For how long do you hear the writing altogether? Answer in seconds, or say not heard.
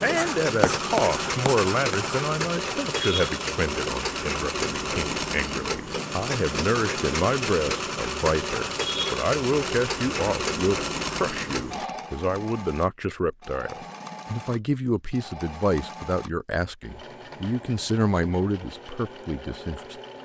2 s.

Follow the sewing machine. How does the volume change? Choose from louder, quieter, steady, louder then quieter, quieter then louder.
quieter.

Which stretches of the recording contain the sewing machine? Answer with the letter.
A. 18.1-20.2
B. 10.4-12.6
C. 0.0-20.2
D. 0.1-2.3
C.